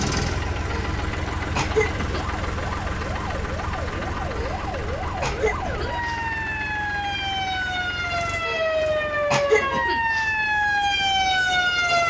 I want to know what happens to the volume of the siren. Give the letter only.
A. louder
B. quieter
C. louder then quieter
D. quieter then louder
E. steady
A.